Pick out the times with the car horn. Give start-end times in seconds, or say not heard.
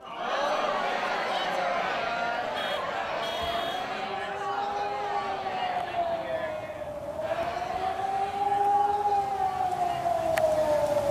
2.5-3.9.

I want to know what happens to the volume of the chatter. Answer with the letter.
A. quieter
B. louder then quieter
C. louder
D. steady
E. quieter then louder
A.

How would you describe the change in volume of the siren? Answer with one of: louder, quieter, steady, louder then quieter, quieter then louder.
louder.